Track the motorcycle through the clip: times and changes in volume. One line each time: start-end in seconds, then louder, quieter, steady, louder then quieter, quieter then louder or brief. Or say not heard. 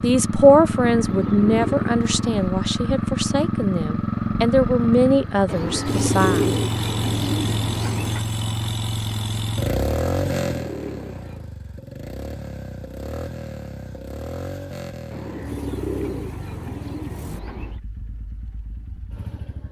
0.0-19.6 quieter.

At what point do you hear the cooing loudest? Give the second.
6 s.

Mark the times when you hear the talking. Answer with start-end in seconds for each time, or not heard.
0.0-6.5.